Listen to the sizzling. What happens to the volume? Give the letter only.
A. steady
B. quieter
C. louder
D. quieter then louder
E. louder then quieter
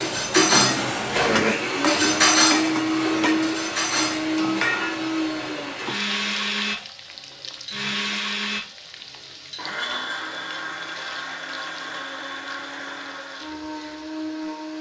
B.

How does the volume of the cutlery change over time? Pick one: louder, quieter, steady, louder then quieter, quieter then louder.
quieter then louder.